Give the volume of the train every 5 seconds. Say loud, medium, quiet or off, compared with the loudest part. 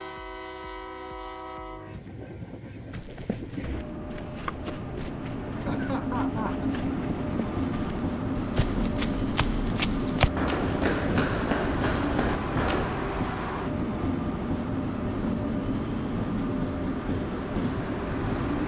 medium, loud, loud, loud.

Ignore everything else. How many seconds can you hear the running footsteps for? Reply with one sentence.
You can hear the running footsteps for 10 seconds altogether.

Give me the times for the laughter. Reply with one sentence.
The laughter can be heard from 5.7 to 6.7 s.